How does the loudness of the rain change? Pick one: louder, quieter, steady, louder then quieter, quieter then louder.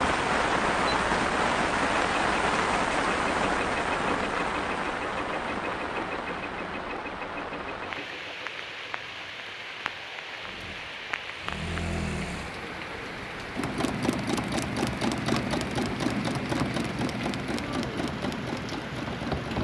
quieter.